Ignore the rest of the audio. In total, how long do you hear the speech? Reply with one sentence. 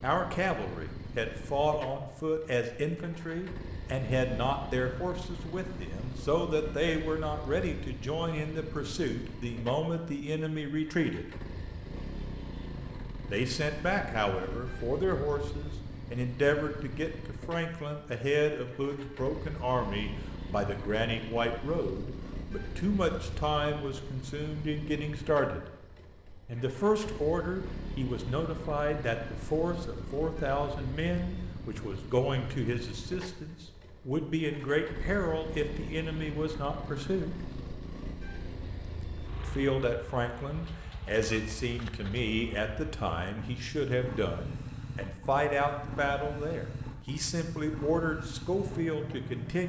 The speech can be heard for 45 seconds in total.